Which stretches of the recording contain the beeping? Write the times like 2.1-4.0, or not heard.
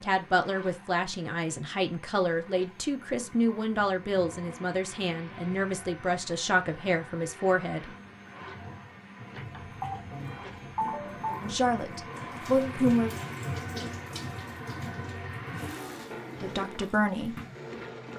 9.3-11.3.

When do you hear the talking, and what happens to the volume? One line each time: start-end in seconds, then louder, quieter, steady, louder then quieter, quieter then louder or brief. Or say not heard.
0.0-7.9 steady
11.4-13.2 brief
16.4-17.4 brief.